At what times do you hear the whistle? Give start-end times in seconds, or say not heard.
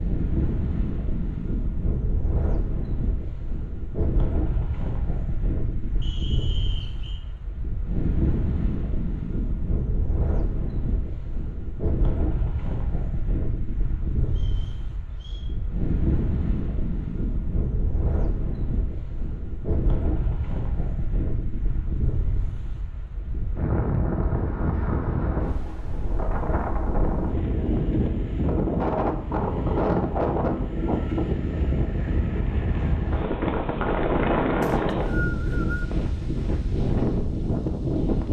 6.0-7.2, 14.2-15.4, 34.6-35.9.